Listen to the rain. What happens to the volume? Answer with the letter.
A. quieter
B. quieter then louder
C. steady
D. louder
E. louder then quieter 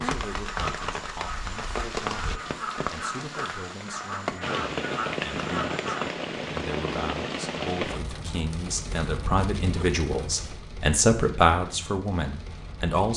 A.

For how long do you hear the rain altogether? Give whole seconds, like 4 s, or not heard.
13 s.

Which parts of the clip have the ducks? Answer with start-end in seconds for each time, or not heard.
0.1-6.2.